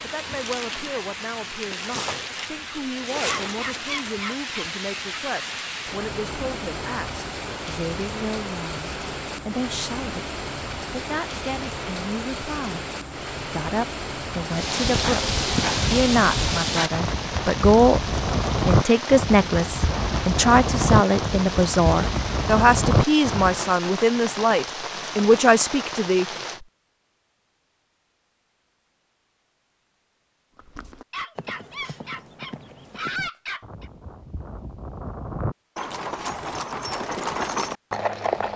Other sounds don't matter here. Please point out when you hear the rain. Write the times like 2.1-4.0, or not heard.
0.0-26.6.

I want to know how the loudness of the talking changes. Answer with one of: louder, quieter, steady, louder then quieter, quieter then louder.
louder.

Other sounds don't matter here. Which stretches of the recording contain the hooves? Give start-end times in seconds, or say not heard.
14.5-23.6, 30.6-38.5.